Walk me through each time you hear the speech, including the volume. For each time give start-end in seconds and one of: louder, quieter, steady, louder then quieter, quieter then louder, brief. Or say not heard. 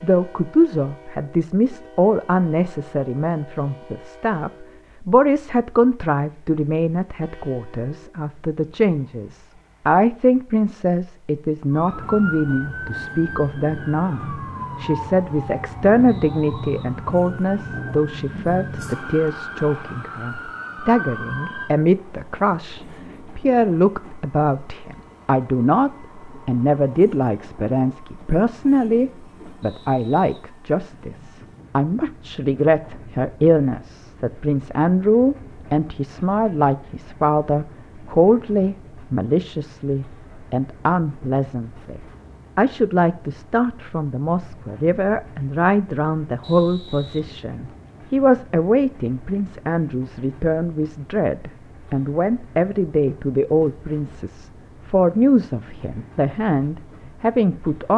0.0-57.9 steady.